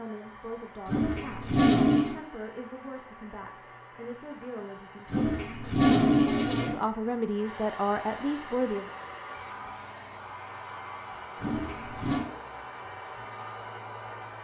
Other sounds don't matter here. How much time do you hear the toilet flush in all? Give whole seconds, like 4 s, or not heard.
4 s.